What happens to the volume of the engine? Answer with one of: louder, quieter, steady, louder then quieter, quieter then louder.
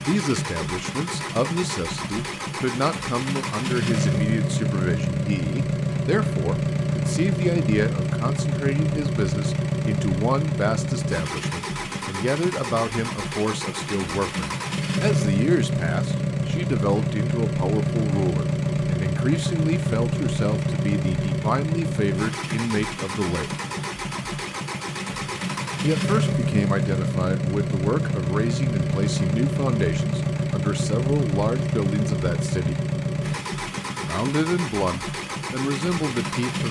steady.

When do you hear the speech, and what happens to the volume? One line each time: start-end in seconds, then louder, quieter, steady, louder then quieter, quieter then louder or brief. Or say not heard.
0.0-23.6 steady
25.8-32.8 steady
34.0-36.6 brief.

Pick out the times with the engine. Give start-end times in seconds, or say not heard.
0.0-36.6.